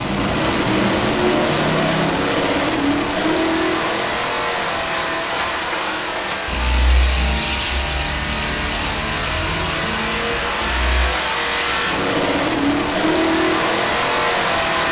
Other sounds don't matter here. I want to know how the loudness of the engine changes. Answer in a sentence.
The volume of the engine goes down, then up.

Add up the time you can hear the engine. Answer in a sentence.
The engine can be heard for 15 seconds in total.